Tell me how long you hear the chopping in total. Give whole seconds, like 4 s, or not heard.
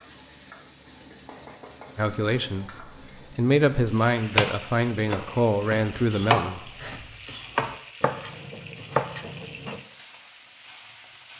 6 s.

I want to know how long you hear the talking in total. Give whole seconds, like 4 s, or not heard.
5 s.